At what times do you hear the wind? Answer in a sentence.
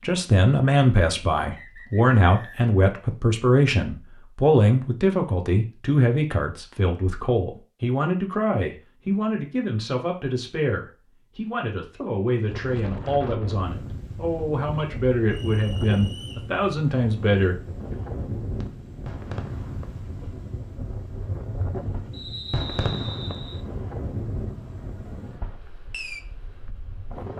You can hear the wind from 12.4 to 27.3 s.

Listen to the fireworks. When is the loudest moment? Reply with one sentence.
The loudest moment of the fireworks is at 23 seconds.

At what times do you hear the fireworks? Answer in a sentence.
You can hear the fireworks from 18.6 to 26.2 s.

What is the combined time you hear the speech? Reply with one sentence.
The speech can be heard for 18 seconds in total.